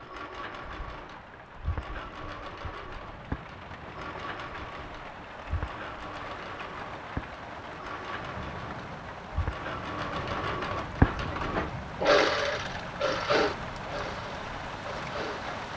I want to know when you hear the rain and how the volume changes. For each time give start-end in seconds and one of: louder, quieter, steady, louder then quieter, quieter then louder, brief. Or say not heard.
0.0-15.7 louder.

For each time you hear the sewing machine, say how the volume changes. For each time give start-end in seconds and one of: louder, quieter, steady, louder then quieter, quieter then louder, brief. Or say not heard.
0.0-15.5 louder.